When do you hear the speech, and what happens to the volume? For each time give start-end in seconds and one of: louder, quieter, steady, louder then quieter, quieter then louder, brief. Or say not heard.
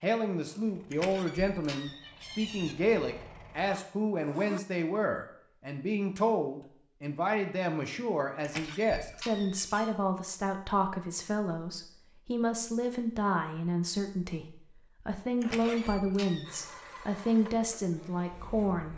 0.0-18.9 steady.